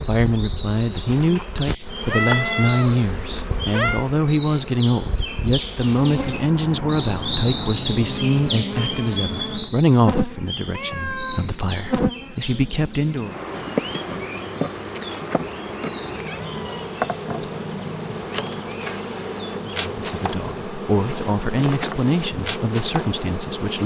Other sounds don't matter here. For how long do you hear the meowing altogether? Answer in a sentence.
The meowing can be heard for 4 seconds in total.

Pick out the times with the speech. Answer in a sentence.
The speech can be heard from 0.0 to 13.3 s and from 19.9 to 23.8 s.